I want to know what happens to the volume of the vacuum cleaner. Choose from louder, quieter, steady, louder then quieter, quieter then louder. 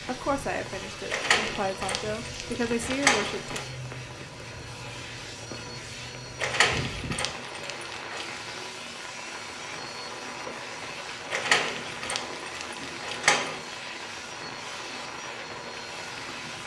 steady.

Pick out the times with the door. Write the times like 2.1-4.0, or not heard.
1.1-3.6, 6.4-8.4, 11.3-13.6.